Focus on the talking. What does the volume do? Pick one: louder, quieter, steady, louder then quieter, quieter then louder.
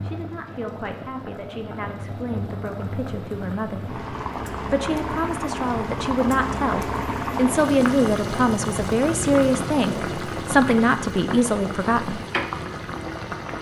louder.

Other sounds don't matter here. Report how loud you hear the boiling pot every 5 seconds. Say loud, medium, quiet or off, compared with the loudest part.
medium, loud, loud.